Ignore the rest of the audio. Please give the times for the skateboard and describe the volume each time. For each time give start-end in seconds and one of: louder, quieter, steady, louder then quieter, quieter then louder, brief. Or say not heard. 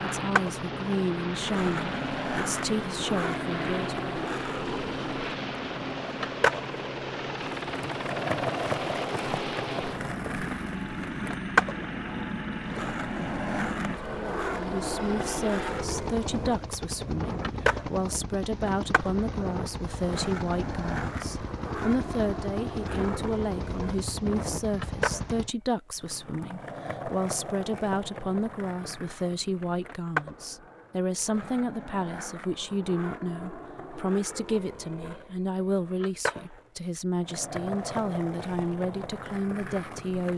0.2-40.3 quieter.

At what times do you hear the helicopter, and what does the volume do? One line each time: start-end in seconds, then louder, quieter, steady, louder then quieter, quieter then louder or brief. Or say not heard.
0.0-25.6 steady.